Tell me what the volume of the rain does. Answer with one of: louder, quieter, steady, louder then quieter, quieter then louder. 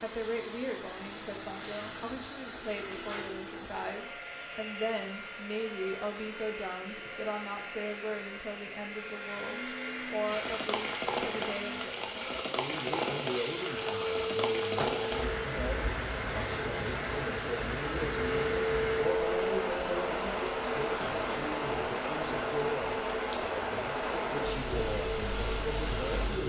steady.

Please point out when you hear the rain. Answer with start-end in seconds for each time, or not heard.
10.2-26.4.